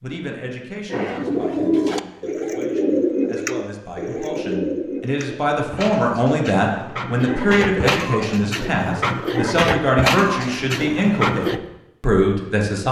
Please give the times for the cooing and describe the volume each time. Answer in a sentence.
You can hear the cooing from 0.9 to 11.6 s, getting quieter then louder.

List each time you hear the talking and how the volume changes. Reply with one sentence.
The talking can be heard from 0.0 to 12.8 s, getting louder.